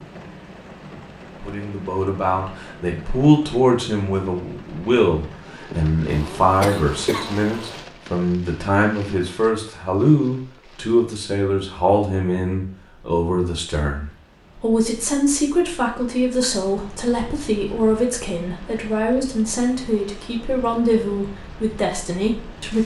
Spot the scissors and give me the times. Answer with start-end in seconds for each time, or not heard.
not heard.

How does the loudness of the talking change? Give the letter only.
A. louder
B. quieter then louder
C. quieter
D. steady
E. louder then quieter
D.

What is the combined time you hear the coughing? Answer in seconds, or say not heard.
2 s.